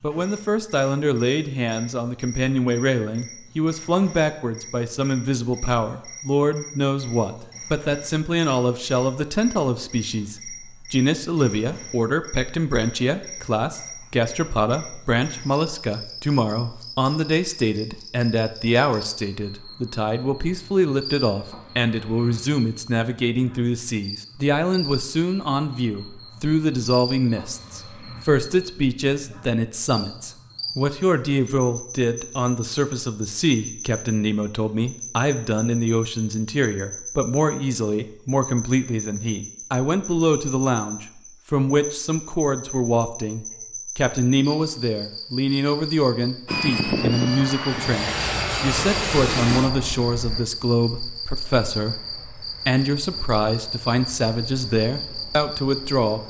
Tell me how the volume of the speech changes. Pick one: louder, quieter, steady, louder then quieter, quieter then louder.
steady.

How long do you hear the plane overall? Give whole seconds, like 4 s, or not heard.
10 s.